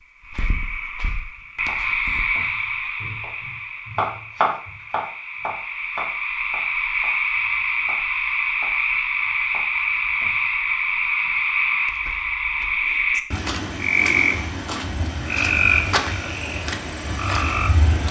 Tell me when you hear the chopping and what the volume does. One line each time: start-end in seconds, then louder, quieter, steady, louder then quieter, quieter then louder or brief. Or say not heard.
1.6-10.4 louder then quieter.